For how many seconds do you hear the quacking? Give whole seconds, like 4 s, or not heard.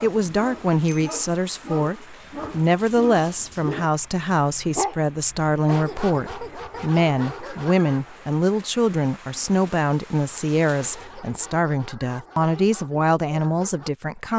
not heard.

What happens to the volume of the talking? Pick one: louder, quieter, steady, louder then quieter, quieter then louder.
steady.